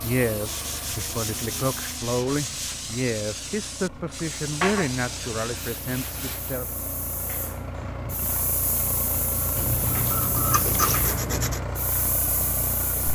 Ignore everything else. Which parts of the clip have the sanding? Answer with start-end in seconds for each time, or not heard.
0.5-2.9, 4.6-6.5, 9.6-11.7.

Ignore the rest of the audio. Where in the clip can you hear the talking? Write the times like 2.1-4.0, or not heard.
0.0-6.7.